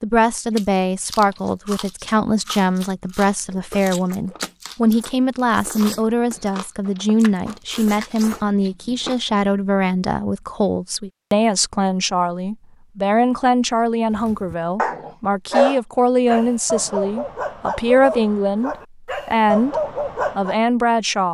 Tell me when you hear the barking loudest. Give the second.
16 s.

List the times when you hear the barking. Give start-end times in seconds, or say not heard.
14.2-20.6.